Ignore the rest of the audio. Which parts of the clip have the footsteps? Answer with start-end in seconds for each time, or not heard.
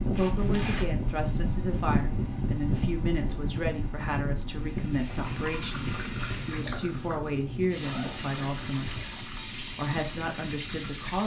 not heard.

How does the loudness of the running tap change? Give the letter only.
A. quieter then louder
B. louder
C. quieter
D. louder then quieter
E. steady
E.